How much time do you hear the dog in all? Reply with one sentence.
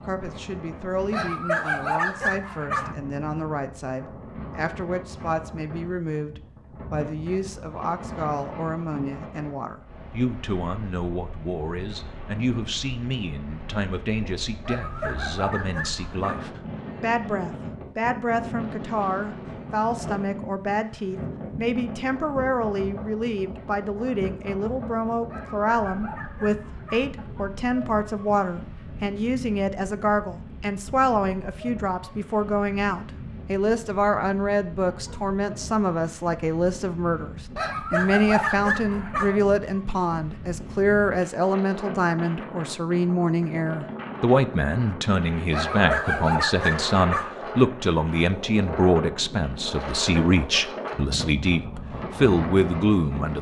You can hear the dog for 9 seconds altogether.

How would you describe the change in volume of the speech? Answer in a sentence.
The loudness of the speech goes up.